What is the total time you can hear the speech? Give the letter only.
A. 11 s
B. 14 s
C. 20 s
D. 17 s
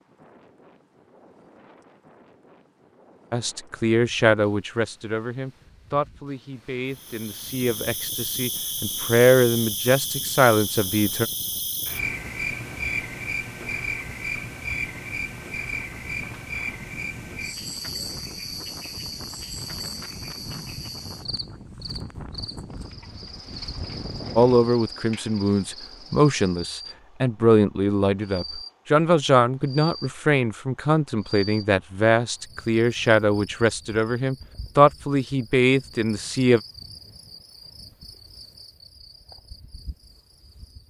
C.